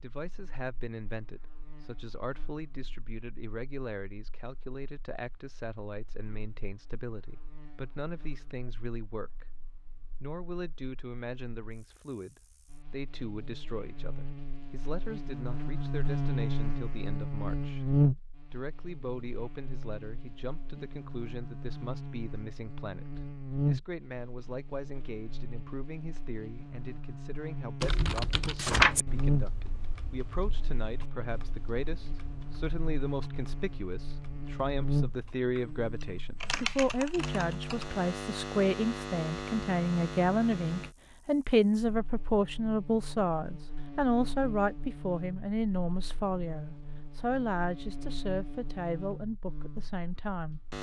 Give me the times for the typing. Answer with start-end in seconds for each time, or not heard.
27.8-37.9.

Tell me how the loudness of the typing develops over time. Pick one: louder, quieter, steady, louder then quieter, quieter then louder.
quieter then louder.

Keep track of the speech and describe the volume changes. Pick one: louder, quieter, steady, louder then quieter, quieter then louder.
louder.